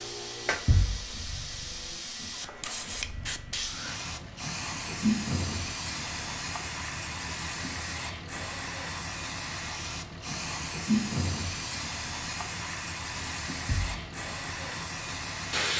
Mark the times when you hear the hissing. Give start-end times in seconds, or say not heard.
0.0-15.7.